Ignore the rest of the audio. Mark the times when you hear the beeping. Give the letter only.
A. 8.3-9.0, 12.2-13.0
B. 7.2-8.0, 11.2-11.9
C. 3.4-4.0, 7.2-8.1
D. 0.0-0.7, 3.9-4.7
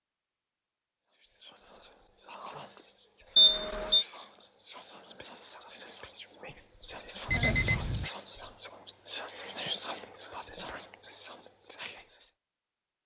C.